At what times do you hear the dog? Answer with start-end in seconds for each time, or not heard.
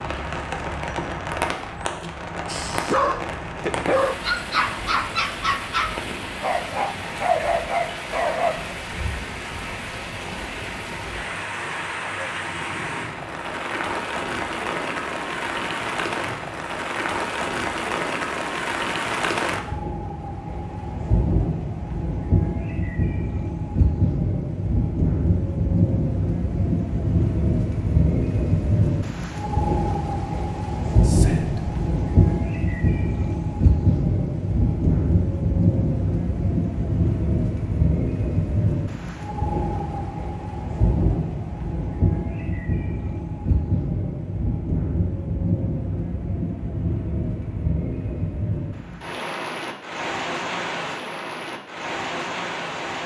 2.5-8.8.